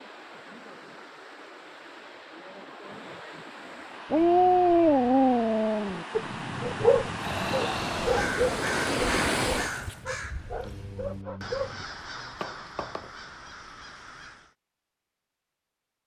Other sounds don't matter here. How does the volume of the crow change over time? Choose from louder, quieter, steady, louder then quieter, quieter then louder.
quieter.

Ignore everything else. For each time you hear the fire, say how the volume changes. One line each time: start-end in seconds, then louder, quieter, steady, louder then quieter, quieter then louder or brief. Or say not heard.
not heard.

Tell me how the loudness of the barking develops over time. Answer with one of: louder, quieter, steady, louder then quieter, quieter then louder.
quieter.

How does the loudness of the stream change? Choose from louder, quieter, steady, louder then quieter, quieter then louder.
louder.